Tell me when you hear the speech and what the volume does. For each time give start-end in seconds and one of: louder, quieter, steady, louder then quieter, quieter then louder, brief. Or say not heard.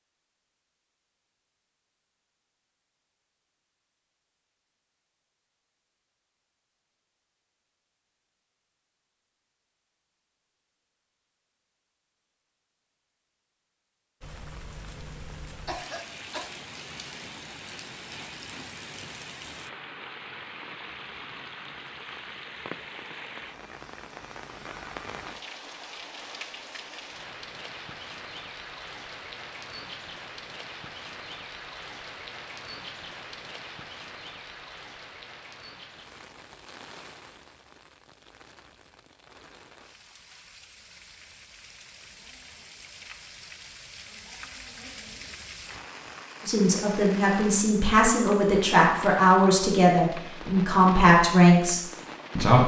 46.5-52.6 louder.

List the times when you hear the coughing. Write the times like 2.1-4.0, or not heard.
15.7-16.5.